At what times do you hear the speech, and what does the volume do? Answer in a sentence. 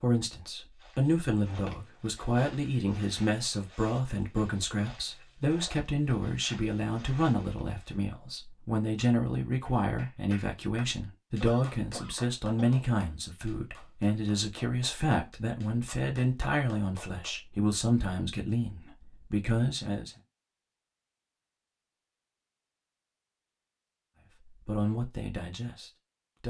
You can hear the speech from 0.0 to 20.1 s, at a steady volume; and briefly from 24.4 to 26.4 s.